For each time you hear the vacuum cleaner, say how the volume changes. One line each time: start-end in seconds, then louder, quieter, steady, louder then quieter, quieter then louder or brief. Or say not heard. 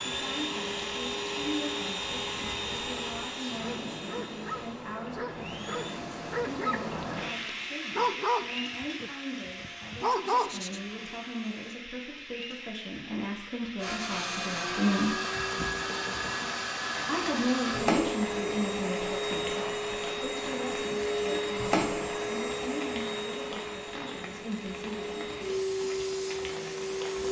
0.0-11.8 quieter
13.8-27.2 steady.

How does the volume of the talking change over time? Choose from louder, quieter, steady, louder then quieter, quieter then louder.
louder then quieter.